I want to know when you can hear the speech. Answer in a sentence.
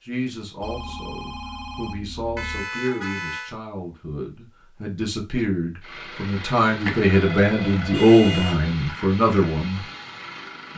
You can hear the speech from 0.0 to 9.8 s.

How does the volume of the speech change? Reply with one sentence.
The volume of the speech goes up.